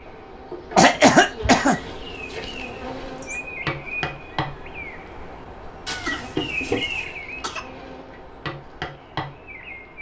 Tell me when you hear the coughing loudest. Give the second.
1 s.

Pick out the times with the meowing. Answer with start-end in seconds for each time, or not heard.
1.6-3.4, 5.8-7.2.